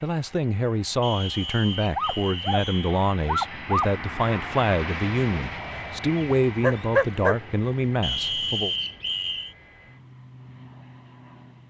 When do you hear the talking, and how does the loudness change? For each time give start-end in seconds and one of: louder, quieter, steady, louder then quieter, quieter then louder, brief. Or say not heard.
0.0-8.8 steady.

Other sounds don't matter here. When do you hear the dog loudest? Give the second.
7 s.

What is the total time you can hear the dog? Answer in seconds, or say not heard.
3 s.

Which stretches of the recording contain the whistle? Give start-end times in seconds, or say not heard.
1.0-3.0, 8.0-9.6.